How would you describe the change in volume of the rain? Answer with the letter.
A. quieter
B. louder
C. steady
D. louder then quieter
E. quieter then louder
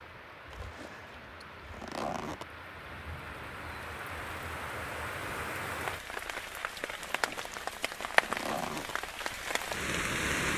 B.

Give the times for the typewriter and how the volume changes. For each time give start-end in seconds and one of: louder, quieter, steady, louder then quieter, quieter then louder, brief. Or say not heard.
not heard.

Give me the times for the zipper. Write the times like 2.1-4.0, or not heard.
0.5-2.5, 7.0-8.9.